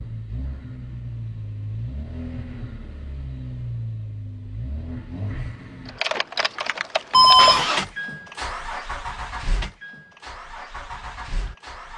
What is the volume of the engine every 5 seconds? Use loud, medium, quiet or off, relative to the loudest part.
medium, loud, medium.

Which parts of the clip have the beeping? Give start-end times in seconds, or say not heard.
7.1-7.7.